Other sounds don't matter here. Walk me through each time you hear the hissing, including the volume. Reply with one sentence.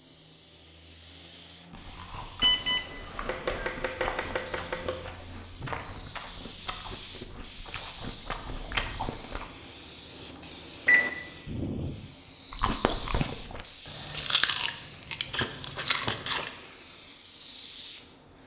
The hissing can be heard from 0.0 to 18.4 s, getting louder.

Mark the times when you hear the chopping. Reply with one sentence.
The chopping can be heard from 3.2 to 5.0 s and from 15.3 to 16.3 s.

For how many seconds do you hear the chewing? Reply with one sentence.
You can hear the chewing for 12 seconds altogether.